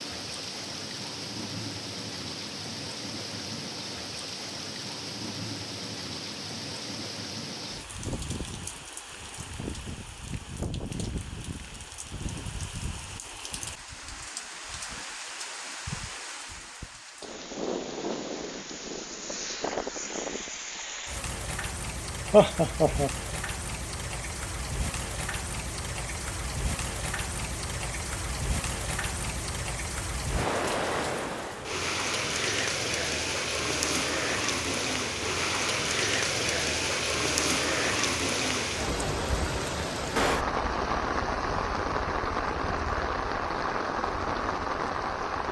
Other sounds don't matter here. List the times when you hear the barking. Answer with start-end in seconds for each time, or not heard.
not heard.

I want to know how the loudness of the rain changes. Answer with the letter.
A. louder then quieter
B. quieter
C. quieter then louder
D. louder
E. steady
D.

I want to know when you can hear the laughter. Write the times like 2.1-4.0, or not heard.
22.3-23.1.